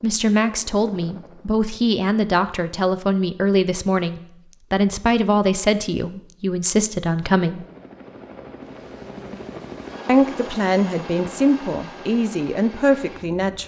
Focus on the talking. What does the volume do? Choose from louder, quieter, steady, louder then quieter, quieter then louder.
steady.